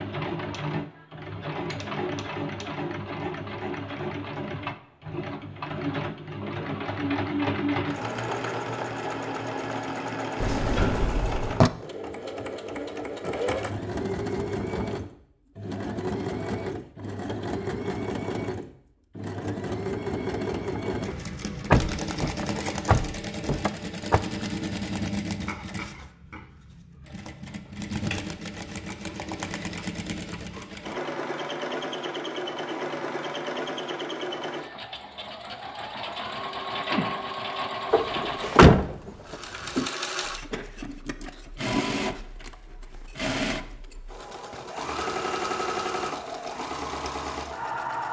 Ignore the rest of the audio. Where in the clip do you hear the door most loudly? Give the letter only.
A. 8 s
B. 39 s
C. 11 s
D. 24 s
B.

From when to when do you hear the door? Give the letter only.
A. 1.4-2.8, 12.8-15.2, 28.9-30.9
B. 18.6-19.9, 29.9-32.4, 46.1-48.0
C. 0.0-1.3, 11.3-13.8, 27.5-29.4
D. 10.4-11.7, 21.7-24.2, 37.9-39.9
D.